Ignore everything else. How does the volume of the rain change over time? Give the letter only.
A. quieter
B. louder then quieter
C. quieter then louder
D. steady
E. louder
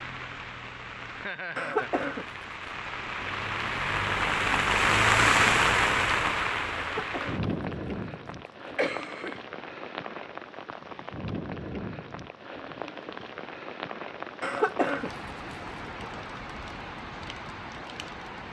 B.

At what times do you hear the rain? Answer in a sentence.
The rain can be heard from 0.0 to 18.4 s.